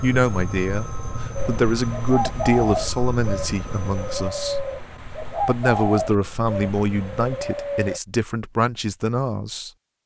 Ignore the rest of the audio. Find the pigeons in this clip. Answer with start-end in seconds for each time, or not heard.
1.4-8.0.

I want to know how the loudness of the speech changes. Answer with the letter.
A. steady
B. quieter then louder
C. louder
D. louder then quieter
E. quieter
A.